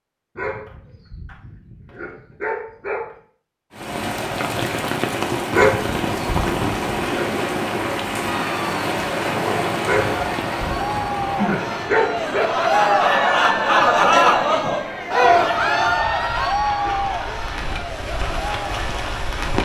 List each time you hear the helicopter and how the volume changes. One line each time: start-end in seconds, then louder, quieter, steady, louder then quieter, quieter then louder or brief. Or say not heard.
not heard.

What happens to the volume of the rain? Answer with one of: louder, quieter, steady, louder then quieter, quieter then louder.
quieter.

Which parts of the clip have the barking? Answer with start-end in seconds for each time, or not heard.
0.3-3.1, 5.5-7.2, 9.8-12.5, 15.2-17.2.